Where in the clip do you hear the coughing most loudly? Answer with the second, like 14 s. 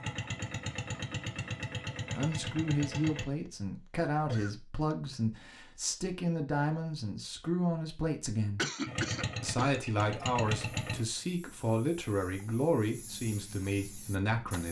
9 s.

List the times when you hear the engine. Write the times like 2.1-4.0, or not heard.
0.0-3.2, 8.8-11.0.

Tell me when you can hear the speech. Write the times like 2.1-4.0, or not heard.
2.0-8.6, 9.4-14.6.